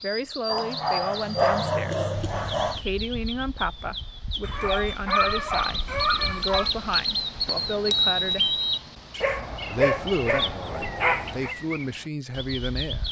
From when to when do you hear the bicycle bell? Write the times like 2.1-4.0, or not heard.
7.5-8.8.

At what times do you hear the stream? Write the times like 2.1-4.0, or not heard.
not heard.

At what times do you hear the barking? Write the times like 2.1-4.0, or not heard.
0.5-2.8, 4.4-6.7, 9.2-11.6.